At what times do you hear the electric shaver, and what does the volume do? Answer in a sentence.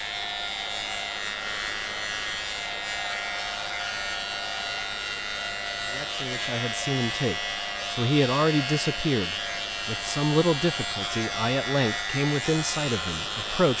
The electric shaver can be heard from 0.0 to 13.7 s, at a steady volume.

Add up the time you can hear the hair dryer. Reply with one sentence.
You can hear the hair dryer for 14 seconds altogether.